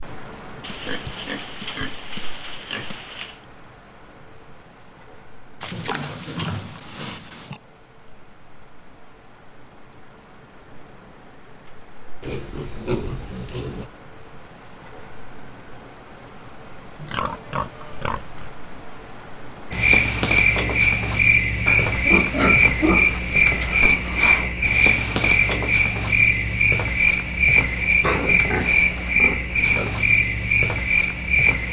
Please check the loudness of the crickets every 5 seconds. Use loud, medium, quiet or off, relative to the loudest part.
medium, quiet, quiet, medium, loud, loud, loud.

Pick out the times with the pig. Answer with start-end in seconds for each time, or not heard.
0.6-3.4, 5.6-7.6, 12.2-13.9, 16.9-18.5, 21.6-24.6, 28.0-29.9.